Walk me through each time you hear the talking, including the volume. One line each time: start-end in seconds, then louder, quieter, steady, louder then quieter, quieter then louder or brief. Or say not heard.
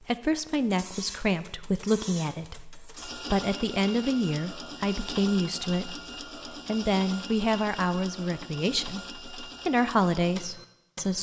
0.1-11.1 steady.